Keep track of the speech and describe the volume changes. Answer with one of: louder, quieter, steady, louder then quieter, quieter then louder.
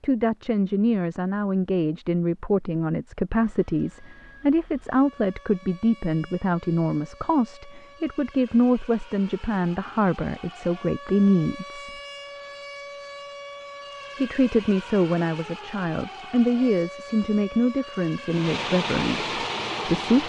steady.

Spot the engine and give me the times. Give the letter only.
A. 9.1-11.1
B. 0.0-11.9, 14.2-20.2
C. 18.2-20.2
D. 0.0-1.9
C.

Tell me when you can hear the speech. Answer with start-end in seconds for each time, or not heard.
0.0-11.9, 14.2-20.2.